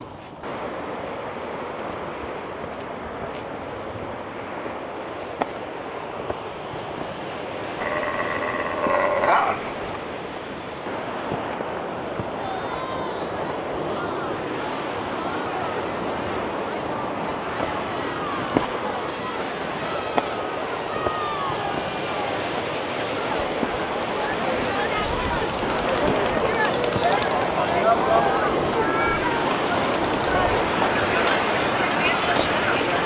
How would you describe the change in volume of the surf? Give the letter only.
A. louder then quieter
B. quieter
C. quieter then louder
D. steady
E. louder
E.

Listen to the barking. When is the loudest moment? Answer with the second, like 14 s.
9 s.